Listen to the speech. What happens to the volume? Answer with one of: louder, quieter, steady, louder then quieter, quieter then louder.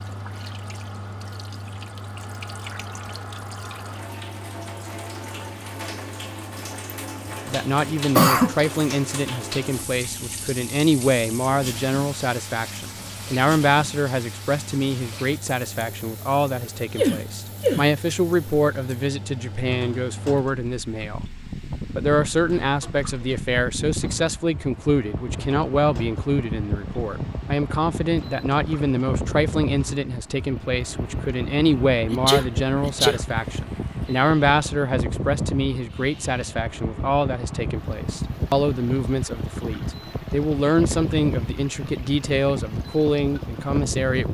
steady.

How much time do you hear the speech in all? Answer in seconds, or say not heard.
36 s.